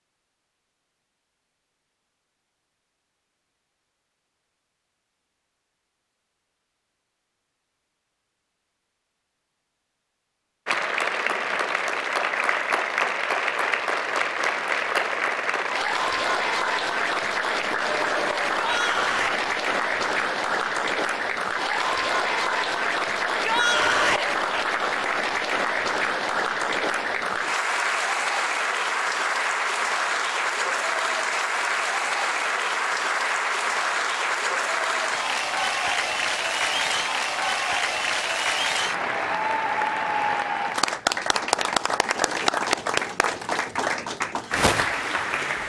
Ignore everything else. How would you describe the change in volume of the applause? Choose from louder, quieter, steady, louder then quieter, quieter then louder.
steady.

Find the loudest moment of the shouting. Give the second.
24 s.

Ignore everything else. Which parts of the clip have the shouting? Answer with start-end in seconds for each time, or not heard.
18.6-19.4, 23.2-24.3.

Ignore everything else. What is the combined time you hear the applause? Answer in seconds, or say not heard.
35 s.